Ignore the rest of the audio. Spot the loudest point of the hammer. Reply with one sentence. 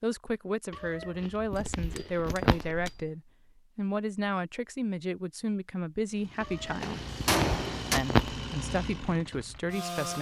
The volume of the hammer peaks at 7 seconds.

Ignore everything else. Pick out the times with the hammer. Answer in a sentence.
You can hear the hammer from 1.8 to 3.1 s and from 6.8 to 8.0 s.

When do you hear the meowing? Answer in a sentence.
You can hear the meowing from 0.7 to 2.8 s and from 6.4 to 8.4 s.